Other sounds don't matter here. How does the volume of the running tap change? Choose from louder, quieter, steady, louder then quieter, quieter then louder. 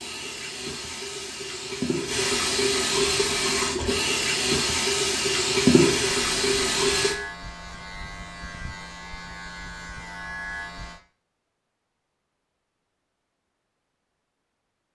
louder.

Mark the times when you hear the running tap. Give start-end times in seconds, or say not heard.
0.0-7.2.